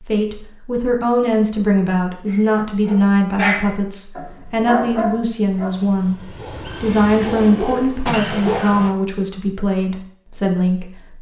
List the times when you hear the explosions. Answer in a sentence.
The explosions can be heard from 8.1 to 8.9 s.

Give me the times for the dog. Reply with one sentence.
You can hear the dog from 2.2 to 8.8 s.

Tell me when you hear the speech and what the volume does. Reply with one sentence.
You can hear the speech from 0.0 to 11.1 s, at a steady volume.